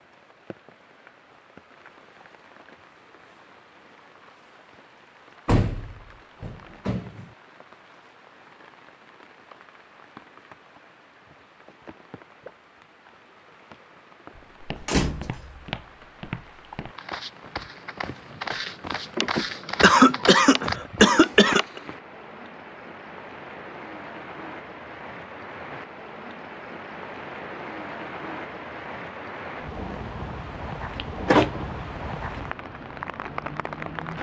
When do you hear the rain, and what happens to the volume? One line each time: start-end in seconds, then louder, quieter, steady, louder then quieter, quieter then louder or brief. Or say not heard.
0.0-34.1 louder.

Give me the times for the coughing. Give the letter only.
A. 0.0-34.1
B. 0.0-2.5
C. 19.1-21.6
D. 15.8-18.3
C.